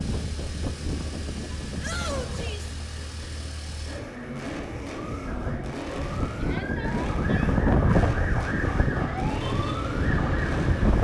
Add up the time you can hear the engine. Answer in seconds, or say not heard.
11 s.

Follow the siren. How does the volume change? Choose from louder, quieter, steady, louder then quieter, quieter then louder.
louder.